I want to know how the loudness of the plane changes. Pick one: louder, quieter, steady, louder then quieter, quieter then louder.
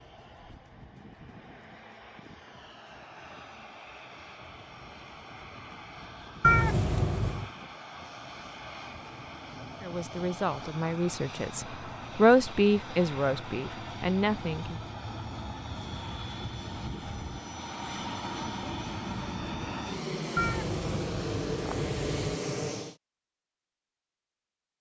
louder.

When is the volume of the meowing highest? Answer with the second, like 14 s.
7 s.